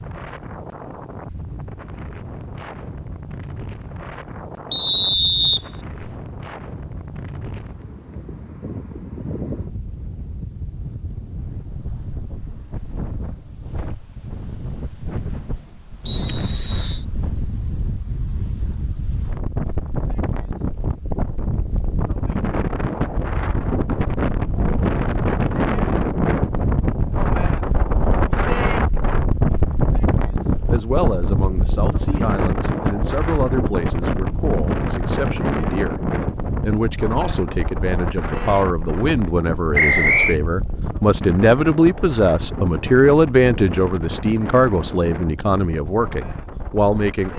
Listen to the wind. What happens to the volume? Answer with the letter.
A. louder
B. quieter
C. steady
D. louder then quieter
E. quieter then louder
D.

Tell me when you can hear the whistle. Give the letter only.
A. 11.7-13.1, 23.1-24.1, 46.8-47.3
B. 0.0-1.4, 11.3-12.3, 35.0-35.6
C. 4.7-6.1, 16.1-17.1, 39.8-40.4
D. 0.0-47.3
C.